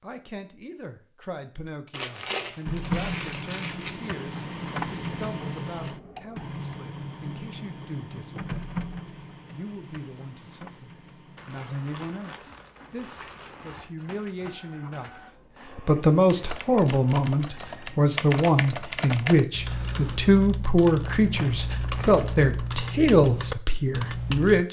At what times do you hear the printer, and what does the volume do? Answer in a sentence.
The printer can be heard from 2.6 to 18.0 s, getting quieter.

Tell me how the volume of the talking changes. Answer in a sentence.
The loudness of the talking goes up.